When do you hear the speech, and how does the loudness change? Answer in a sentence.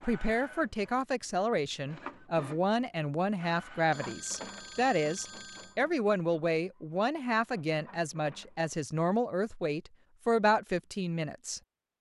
You can hear the speech from 0.0 to 11.6 s, at a steady volume.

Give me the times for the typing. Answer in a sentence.
The typing can't be heard in this clip.